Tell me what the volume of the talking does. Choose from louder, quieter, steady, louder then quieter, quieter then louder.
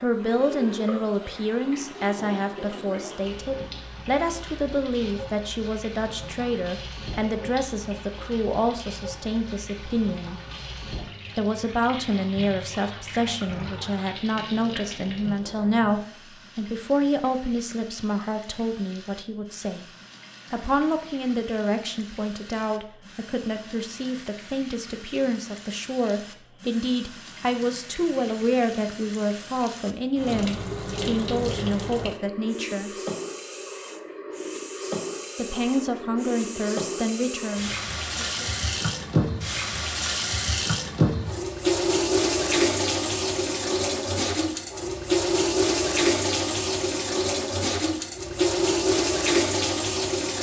steady.